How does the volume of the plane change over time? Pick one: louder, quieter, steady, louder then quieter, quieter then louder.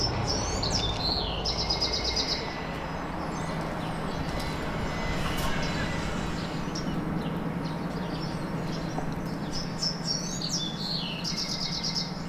quieter then louder.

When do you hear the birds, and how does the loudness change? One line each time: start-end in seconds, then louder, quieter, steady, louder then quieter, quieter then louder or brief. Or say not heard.
0.0-12.2 steady.